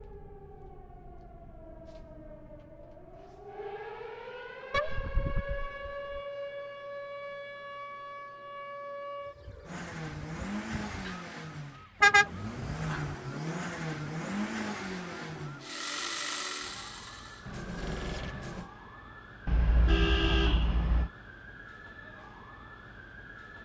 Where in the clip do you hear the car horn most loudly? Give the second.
12 s.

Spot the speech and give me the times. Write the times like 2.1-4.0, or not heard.
not heard.